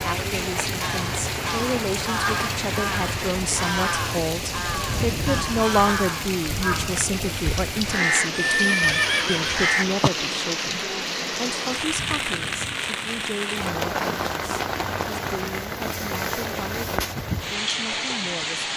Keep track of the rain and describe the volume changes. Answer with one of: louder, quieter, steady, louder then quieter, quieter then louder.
steady.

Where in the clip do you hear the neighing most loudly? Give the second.
9 s.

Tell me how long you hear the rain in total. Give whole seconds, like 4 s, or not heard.
19 s.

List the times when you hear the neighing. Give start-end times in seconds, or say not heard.
8.5-10.1.